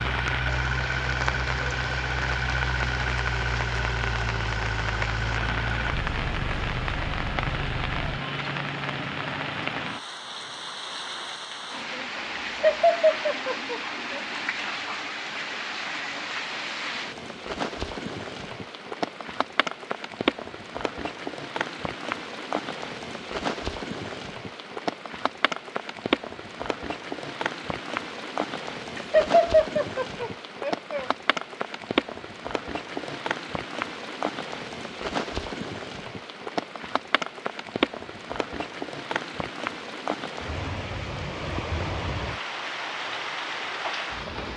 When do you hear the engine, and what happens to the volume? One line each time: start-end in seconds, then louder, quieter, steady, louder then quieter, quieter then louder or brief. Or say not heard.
0.0-8.2 quieter.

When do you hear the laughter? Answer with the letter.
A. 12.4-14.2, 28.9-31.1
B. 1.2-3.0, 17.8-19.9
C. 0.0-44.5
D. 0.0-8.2
A.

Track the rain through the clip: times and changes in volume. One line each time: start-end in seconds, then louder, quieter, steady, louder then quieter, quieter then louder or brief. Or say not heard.
0.0-44.5 steady.